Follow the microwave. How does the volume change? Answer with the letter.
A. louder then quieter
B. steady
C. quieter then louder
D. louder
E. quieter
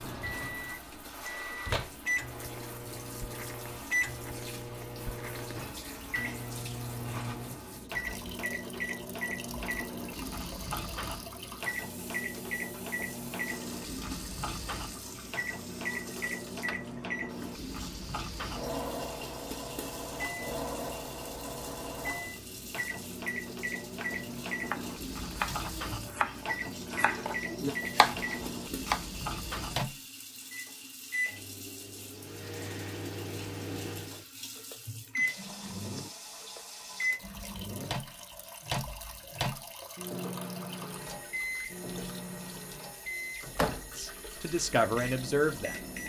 B.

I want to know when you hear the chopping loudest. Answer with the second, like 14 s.
28 s.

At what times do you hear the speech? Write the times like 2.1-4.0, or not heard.
44.0-45.8.